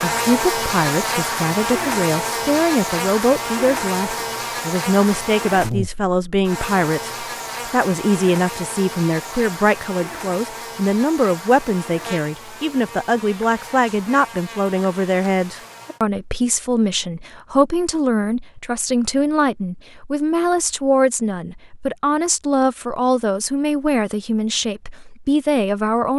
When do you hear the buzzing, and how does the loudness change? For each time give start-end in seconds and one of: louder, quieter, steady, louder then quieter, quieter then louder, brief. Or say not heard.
0.0-16.0 quieter.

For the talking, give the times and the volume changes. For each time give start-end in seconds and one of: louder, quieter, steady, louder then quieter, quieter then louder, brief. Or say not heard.
0.0-26.1 steady.